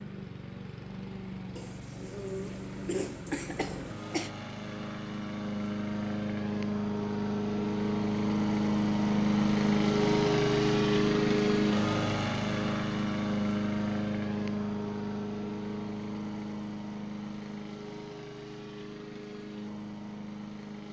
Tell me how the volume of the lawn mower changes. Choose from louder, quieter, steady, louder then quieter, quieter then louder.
louder then quieter.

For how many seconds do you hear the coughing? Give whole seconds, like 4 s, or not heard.
3 s.